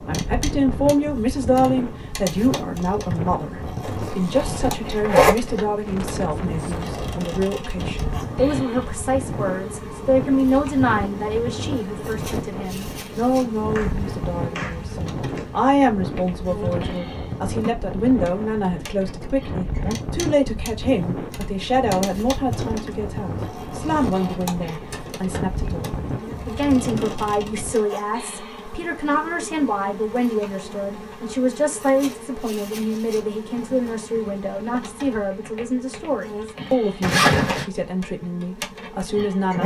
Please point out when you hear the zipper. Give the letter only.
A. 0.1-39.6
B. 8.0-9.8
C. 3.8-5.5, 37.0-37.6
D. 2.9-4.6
C.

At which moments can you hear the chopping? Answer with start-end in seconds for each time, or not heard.
13.8-15.5.